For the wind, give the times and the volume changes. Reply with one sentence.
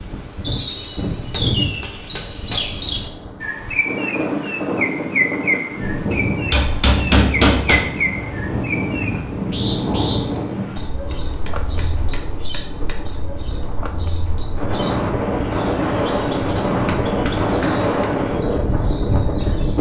You can hear the wind from 0.0 to 19.7 s, getting louder.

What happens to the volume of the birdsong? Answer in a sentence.
The volume of the birdsong goes down.